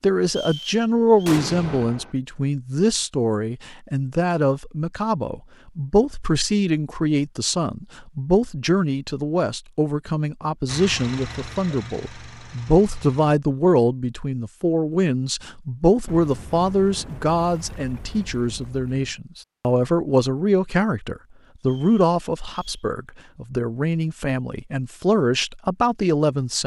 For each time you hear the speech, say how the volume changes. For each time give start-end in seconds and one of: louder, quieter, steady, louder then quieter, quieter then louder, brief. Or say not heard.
0.0-26.6 steady.